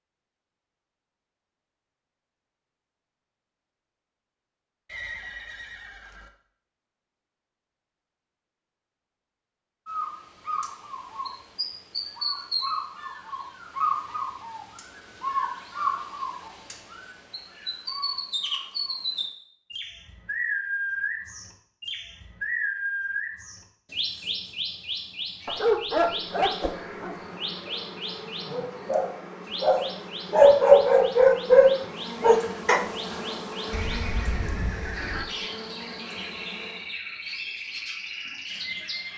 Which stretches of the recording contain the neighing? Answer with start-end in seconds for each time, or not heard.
4.8-6.3, 33.7-35.2.